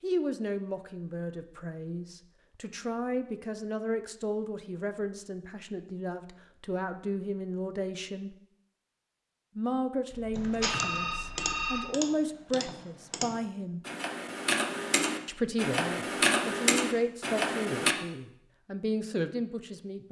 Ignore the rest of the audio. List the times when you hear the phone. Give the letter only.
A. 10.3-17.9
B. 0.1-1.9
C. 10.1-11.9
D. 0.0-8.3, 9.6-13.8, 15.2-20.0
C.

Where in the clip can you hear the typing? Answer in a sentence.
The typing can be heard from 10.3 to 17.9 s.